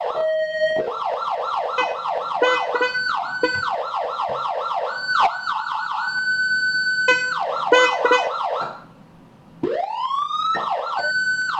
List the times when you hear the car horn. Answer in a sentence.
The car horn can be heard from 1.8 to 3.6 s and from 7.0 to 8.3 s.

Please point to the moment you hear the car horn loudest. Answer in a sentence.
The loudest moment of the car horn is at 8 seconds.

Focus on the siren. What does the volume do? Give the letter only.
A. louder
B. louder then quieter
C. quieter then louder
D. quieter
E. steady
E.